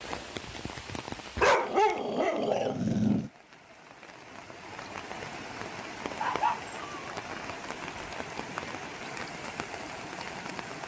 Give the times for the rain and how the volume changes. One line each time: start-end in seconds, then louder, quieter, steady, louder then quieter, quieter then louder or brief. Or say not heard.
0.0-10.8 quieter then louder.